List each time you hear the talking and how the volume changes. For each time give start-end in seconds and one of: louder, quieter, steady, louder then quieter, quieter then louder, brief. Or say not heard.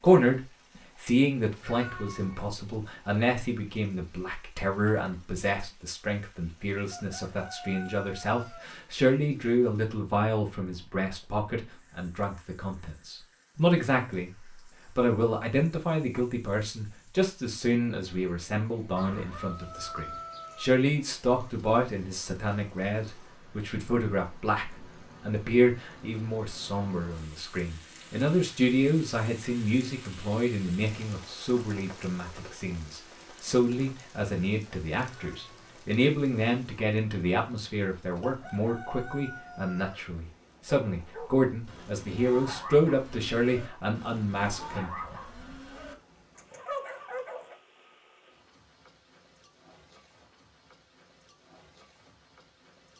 0.0-44.9 steady.